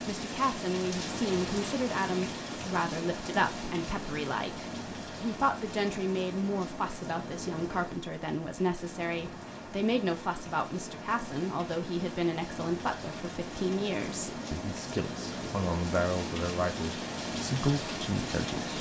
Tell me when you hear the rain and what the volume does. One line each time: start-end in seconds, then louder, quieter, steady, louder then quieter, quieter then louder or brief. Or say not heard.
0.0-18.7 quieter then louder.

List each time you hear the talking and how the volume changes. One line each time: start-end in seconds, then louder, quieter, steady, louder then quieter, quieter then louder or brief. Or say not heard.
0.1-18.7 steady.